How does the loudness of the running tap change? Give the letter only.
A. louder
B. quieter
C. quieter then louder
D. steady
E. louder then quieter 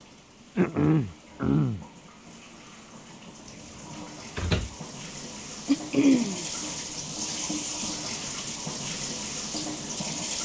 A.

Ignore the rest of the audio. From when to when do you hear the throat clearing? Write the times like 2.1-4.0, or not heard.
0.6-1.8, 5.7-6.5.